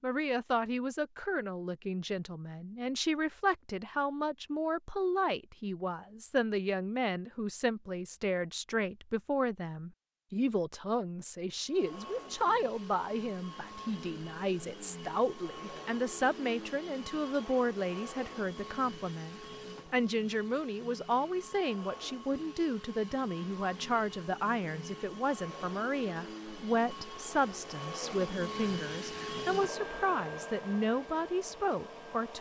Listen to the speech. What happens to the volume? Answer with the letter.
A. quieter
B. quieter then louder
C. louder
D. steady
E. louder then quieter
D.